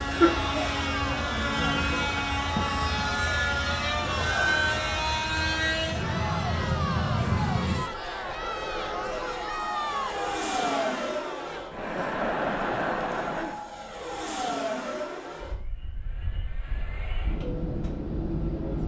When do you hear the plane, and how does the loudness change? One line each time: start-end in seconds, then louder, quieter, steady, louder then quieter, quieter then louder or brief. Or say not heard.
0.0-18.8 quieter.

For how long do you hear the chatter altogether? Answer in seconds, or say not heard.
14 s.